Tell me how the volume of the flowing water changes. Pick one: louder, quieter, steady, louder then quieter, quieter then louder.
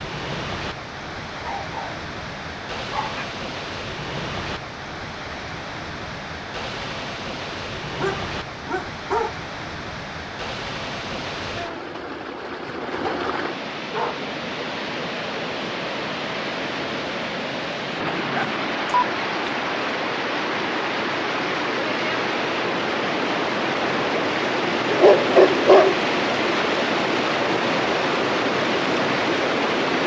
louder.